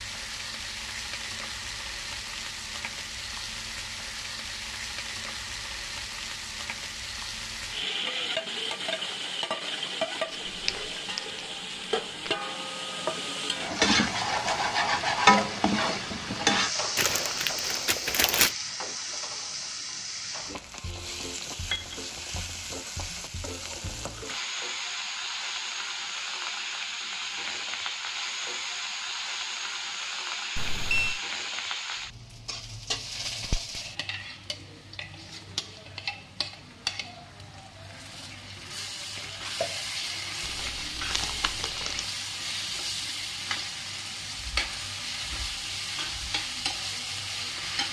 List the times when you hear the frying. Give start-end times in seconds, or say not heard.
0.0-47.8.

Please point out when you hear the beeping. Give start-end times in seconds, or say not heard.
30.6-31.2.